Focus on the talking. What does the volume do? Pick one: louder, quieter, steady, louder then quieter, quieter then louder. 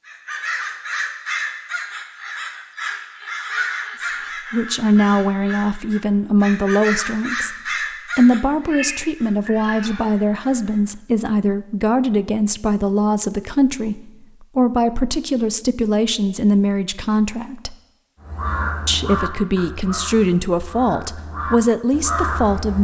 steady.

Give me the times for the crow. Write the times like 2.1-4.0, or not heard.
0.1-11.0, 18.2-22.7.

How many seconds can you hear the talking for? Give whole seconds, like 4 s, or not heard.
17 s.